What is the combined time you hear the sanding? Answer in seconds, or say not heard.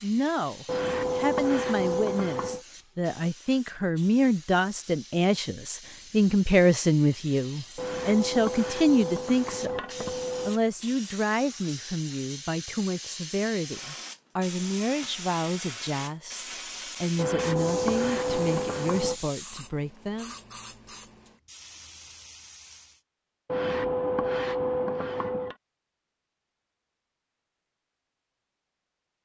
9 s.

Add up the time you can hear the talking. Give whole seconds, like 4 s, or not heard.
20 s.